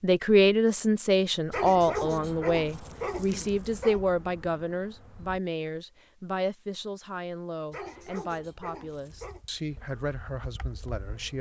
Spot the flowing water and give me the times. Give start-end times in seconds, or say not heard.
not heard.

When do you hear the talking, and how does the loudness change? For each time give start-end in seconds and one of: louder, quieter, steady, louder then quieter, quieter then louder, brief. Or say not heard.
0.0-11.3 quieter.